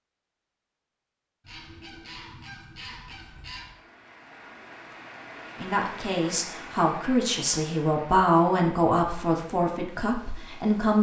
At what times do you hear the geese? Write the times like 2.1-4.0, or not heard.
1.4-3.8.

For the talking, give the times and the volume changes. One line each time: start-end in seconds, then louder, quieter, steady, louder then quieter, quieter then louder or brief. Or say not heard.
5.5-10.9 louder then quieter.